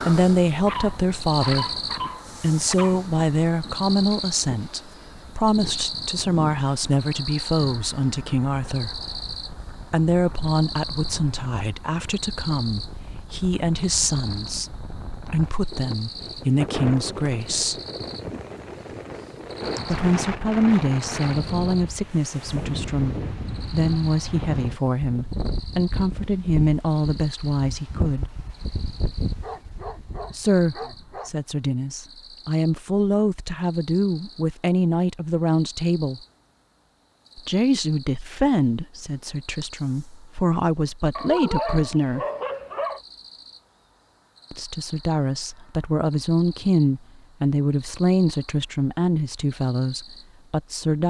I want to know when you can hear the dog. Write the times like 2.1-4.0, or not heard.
0.7-3.0, 29.2-31.3, 41.1-43.0.